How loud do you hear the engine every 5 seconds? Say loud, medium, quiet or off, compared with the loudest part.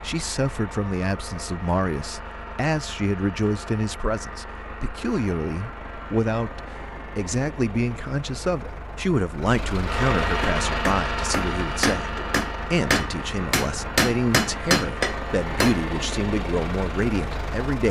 medium, medium, loud, loud.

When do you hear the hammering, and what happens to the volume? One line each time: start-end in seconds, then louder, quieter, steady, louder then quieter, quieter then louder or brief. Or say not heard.
10.4-15.8 louder.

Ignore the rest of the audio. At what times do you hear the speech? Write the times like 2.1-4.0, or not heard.
0.0-17.8.